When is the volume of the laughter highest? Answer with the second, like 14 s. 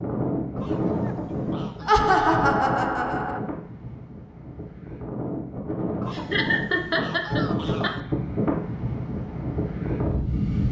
2 s.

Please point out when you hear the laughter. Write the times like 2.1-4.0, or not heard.
1.9-3.4, 6.1-7.9.